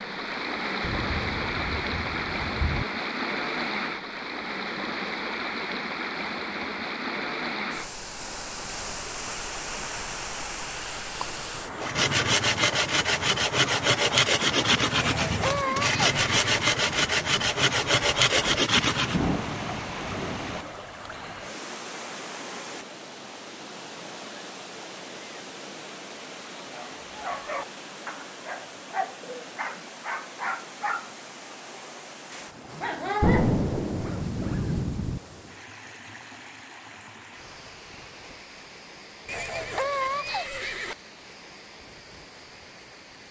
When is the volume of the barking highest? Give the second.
33 s.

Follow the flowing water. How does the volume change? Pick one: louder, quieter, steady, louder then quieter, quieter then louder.
quieter.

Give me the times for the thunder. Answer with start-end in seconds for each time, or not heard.
0.8-2.9, 18.8-20.6, 33.2-35.2.